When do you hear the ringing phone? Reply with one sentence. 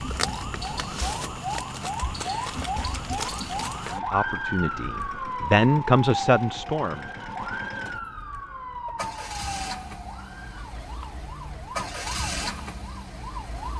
The ringing phone can't be heard in this clip.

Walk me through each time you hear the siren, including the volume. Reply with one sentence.
The siren can be heard from 0.0 to 13.7 s, getting quieter.